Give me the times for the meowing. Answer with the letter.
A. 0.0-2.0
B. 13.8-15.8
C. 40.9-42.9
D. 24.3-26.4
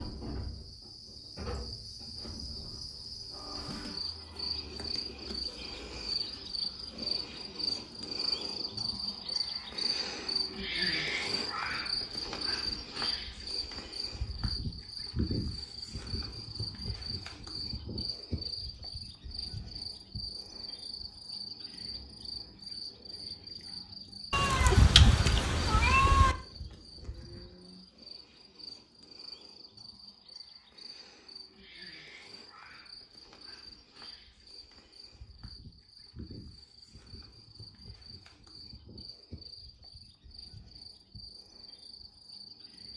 D.